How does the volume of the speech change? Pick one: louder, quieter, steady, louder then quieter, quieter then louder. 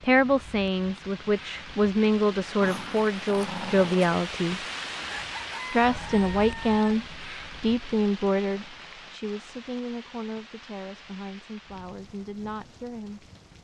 quieter.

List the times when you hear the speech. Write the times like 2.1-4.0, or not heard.
0.0-4.7, 5.7-13.2.